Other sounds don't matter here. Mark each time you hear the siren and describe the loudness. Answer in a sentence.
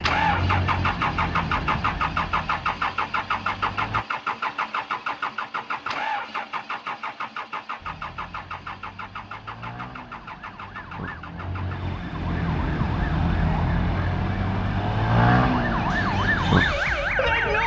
You can hear the siren from 0.0 to 4.0 s, getting quieter; and from 7.8 to 17.6 s, getting louder.